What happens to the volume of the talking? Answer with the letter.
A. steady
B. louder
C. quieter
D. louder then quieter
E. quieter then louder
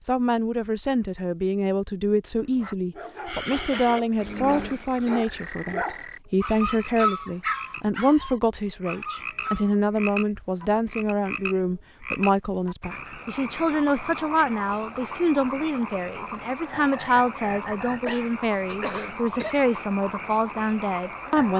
A.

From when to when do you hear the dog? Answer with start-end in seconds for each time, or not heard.
2.4-9.8.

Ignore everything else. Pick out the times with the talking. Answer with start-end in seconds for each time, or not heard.
0.1-21.5.